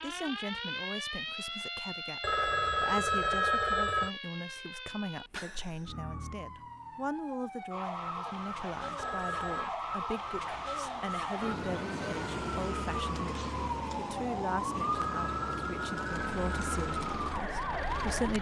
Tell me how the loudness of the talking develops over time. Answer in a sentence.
The loudness of the talking stays about the same.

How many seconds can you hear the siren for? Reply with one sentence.
The siren can be heard for 18 seconds in total.